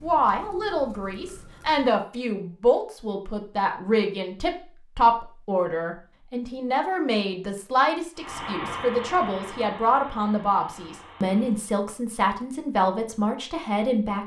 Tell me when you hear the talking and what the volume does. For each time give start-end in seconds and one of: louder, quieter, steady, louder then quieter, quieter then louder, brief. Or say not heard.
0.0-14.2 steady.